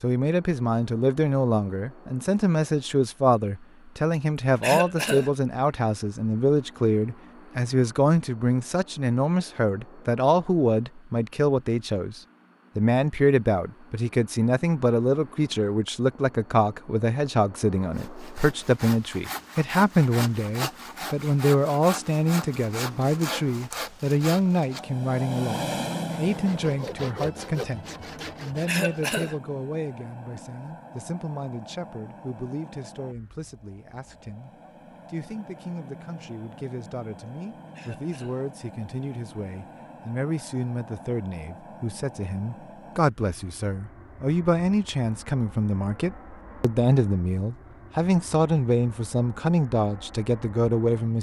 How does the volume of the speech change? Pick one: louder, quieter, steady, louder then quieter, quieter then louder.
quieter then louder.